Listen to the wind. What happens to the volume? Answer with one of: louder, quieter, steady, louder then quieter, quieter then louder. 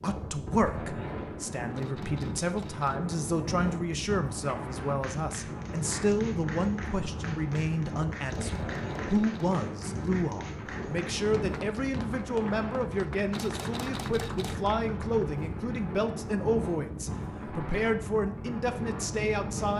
steady.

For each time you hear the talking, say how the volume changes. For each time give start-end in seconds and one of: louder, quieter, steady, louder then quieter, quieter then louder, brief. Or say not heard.
0.0-19.7 steady.